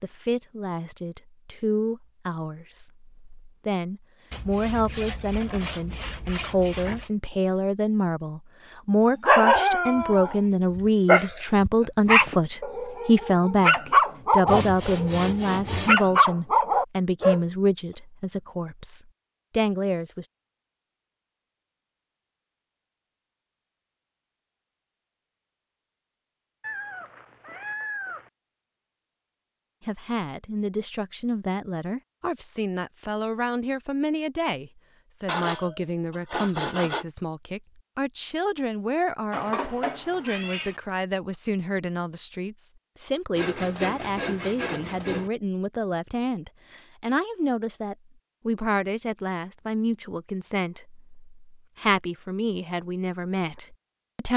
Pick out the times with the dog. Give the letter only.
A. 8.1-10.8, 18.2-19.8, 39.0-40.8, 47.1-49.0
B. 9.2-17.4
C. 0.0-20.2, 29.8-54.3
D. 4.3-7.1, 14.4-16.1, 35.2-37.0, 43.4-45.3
B.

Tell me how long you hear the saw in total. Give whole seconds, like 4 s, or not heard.
8 s.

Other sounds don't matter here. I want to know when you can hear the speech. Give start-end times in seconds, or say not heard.
0.0-20.2, 29.8-54.3.